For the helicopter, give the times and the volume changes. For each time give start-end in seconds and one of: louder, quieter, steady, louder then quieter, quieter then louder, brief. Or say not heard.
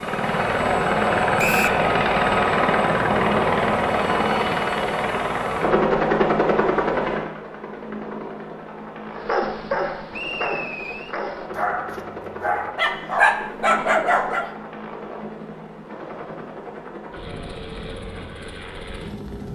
0.0-19.4 quieter.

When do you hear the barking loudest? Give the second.
13 s.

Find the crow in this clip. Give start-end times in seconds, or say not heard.
not heard.